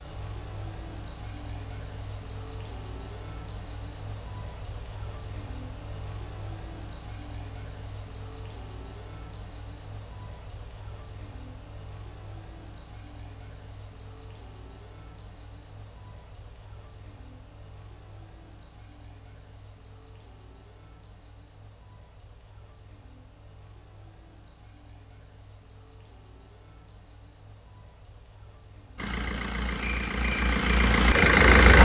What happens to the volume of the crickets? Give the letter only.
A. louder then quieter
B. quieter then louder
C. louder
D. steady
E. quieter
E.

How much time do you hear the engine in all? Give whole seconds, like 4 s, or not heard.
3 s.